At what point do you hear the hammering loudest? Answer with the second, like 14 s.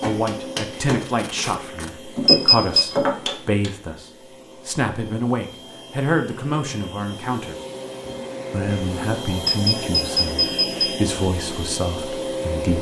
3 s.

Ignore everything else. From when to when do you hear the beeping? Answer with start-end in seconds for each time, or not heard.
2.2-2.9, 9.4-10.9.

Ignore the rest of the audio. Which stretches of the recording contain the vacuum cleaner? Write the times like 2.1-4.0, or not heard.
0.0-12.7.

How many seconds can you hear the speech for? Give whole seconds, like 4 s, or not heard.
12 s.